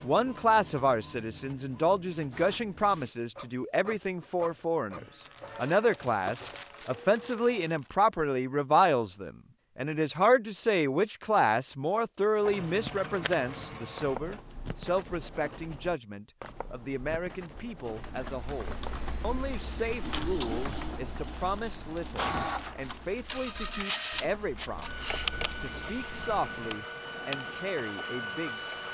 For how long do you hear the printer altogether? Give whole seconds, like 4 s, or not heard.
19 s.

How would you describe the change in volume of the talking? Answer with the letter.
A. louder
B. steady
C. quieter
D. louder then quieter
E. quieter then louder
C.